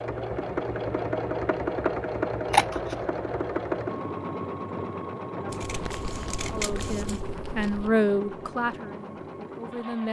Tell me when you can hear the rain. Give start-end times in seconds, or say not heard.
not heard.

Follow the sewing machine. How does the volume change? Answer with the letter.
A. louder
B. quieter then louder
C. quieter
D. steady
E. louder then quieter
C.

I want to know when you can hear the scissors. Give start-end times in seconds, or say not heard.
2.5-3.0, 5.5-7.3.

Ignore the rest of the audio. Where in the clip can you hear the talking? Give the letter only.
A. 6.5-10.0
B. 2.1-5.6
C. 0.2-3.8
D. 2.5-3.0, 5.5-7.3
A.